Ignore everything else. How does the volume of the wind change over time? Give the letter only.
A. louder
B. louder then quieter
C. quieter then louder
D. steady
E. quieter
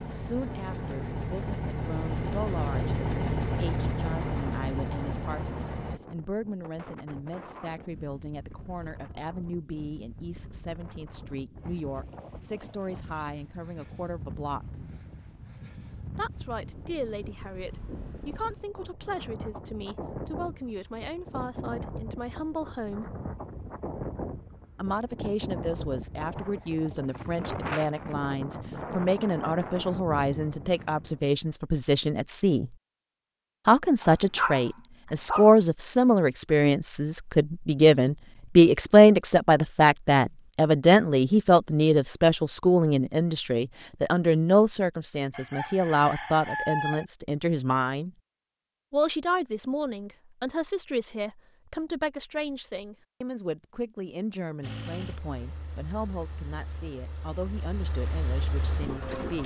A.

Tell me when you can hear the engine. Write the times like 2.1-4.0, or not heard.
0.0-6.0, 54.6-59.4.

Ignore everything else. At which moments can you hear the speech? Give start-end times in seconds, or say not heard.
0.1-14.8, 16.1-23.1, 24.8-32.8, 33.6-48.1, 48.9-59.4.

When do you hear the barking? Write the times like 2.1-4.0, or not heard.
34.0-35.5.